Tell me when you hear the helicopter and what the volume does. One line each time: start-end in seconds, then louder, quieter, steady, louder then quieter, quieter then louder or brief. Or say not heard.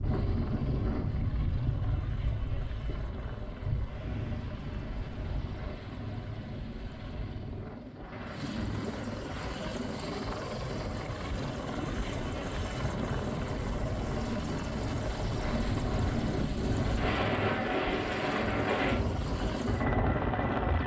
0.0-20.8 louder.